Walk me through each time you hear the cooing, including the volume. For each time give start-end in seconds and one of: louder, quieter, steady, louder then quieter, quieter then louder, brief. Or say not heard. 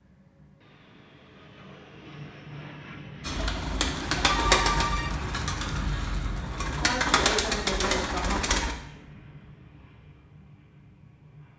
3.2-8.8 quieter then louder.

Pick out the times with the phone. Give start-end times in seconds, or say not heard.
4.2-5.2.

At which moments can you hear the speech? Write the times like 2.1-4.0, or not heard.
6.8-8.4.